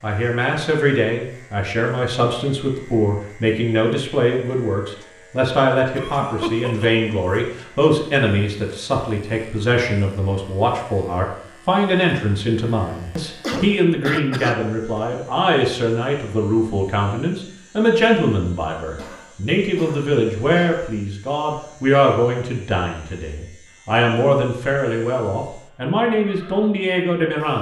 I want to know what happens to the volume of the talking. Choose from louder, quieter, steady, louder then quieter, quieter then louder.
steady.